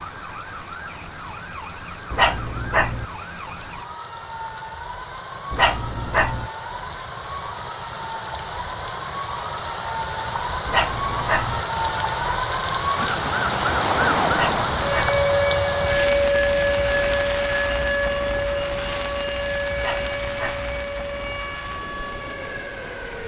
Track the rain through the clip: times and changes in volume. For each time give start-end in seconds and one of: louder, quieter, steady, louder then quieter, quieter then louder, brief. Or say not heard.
0.0-23.2 louder then quieter.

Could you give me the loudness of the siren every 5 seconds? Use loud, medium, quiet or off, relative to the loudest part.
quiet, quiet, loud, loud, medium.